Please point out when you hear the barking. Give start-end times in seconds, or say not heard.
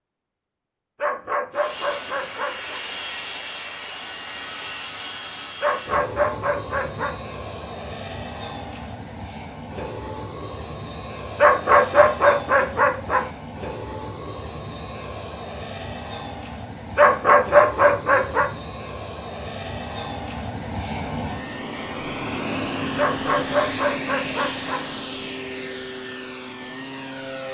1.0-2.8, 5.6-7.2, 11.3-13.2, 16.9-18.5, 22.9-24.9.